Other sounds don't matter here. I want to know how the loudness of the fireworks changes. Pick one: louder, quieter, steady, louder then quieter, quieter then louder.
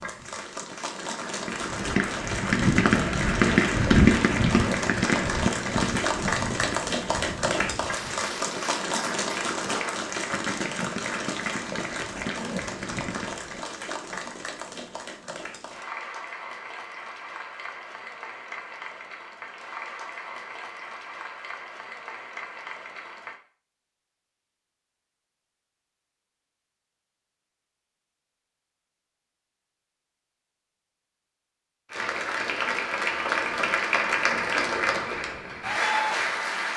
quieter.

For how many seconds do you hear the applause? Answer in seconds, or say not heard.
28 s.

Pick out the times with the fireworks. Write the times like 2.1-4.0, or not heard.
1.4-13.7.